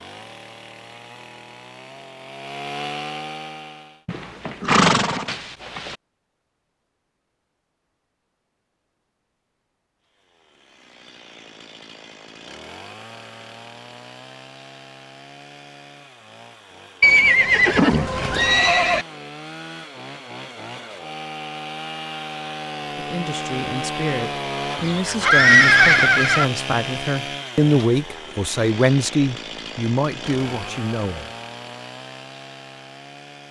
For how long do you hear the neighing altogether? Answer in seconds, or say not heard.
6 s.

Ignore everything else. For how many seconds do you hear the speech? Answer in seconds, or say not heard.
8 s.